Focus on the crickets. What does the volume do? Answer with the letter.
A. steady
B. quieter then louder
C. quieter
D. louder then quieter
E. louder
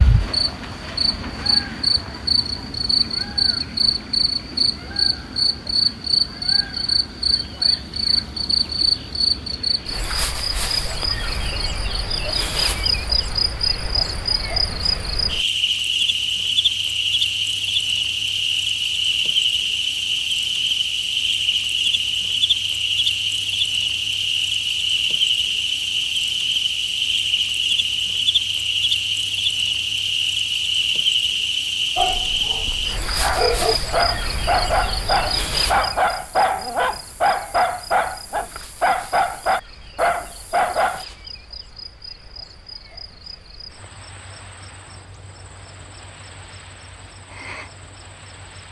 C.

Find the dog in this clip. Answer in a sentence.
You can hear the dog from 31.9 to 41.0 s.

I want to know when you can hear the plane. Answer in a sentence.
You can't hear the plane here.